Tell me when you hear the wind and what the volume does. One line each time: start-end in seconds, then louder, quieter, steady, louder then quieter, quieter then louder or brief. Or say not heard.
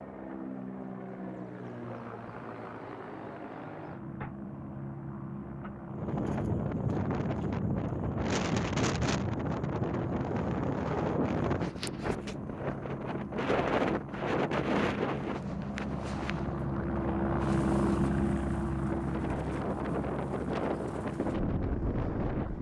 5.9-22.5 quieter then louder.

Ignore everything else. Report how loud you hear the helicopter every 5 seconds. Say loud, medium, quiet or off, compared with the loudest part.
medium, medium, medium, loud, medium.